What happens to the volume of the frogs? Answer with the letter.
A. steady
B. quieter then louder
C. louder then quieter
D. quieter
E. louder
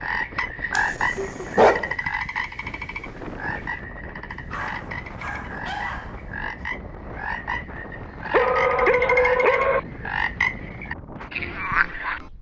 B.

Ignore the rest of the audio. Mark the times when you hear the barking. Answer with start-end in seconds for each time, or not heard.
0.8-1.9, 4.2-6.5, 8.3-9.8.